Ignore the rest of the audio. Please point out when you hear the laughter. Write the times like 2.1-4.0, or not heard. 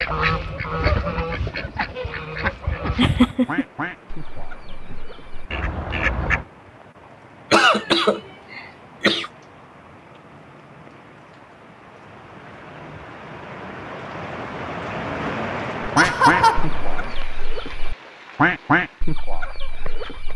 3.0-3.6, 7.5-9.3, 15.9-16.6.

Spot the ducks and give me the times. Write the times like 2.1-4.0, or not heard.
0.0-6.5, 15.8-20.3.